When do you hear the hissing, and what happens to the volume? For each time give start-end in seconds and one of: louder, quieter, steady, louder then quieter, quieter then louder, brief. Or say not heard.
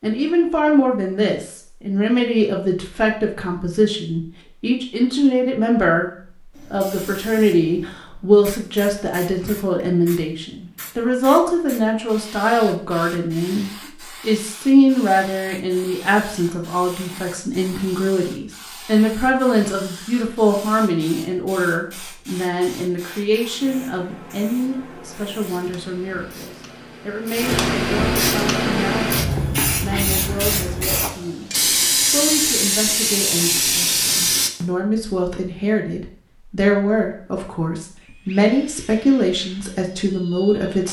6.5-34.5 louder.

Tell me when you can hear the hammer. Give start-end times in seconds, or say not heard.
not heard.